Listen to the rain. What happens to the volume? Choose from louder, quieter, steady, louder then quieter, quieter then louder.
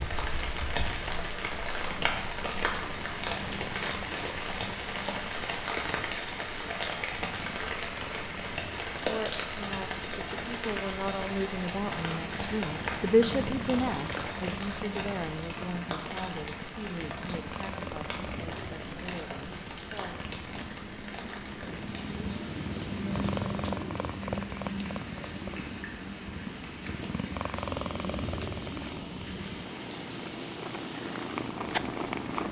quieter.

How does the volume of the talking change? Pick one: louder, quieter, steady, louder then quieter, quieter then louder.
louder then quieter.